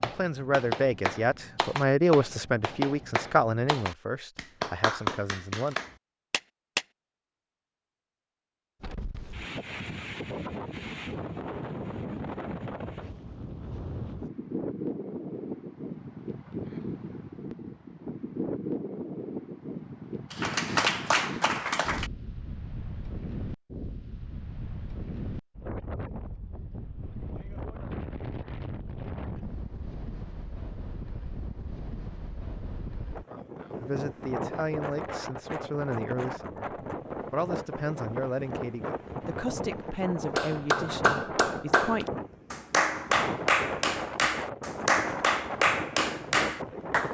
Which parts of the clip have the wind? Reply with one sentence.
The wind can be heard from 8.8 to 47.0 s.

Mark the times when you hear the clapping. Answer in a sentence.
The clapping can be heard from 0.0 to 6.8 s, from 20.3 to 22.1 s and from 40.4 to 47.0 s.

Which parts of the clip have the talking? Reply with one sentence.
The talking can be heard from 0.0 to 5.8 s and from 33.8 to 42.0 s.